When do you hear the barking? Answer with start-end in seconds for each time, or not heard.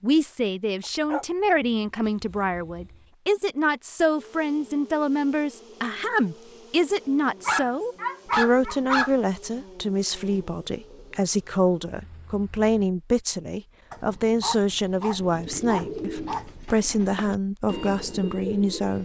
0.8-1.2, 2.2-3.0, 7.5-9.1, 13.9-16.4.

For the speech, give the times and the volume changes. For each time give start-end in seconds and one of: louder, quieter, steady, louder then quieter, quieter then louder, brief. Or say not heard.
0.0-18.9 steady.